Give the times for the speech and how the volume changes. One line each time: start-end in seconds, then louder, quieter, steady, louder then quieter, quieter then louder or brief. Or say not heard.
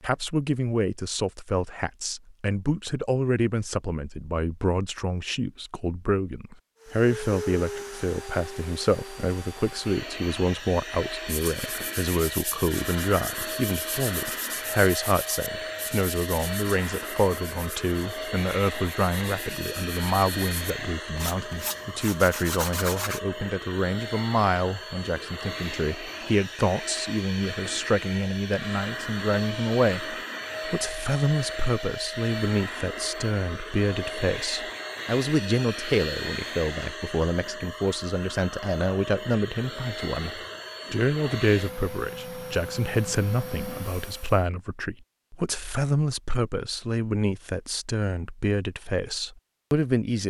0.0-50.2 steady.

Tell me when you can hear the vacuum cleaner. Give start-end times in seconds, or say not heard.
6.8-44.5.